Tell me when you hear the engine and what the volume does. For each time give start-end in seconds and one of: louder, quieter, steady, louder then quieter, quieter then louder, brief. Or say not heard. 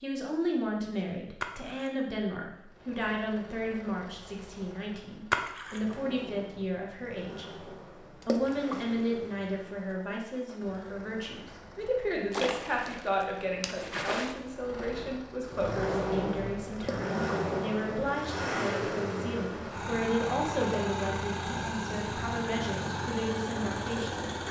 2.6-24.4 louder.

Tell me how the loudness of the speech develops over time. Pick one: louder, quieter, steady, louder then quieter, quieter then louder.
steady.